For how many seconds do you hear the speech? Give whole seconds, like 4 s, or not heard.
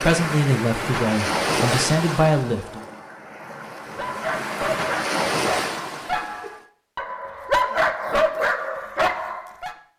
3 s.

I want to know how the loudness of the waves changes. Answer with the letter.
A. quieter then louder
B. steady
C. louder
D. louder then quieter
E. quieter
A.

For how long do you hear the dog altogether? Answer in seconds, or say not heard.
6 s.